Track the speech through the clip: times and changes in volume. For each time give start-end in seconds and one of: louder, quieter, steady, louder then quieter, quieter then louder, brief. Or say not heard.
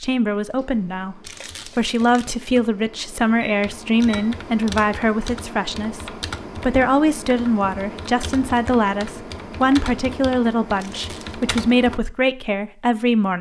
0.0-13.3 steady.